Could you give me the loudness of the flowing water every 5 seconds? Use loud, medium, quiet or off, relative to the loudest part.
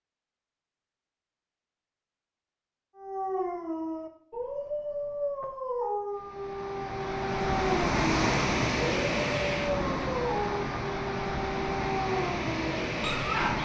off, loud, loud.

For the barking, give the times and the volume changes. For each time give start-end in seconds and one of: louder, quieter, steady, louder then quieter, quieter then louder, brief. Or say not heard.
3.0-13.5 steady.